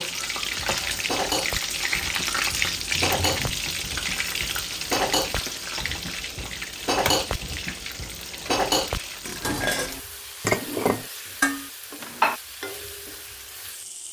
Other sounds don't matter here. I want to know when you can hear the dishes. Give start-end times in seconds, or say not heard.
0.4-12.4.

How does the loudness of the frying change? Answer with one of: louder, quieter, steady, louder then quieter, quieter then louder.
quieter.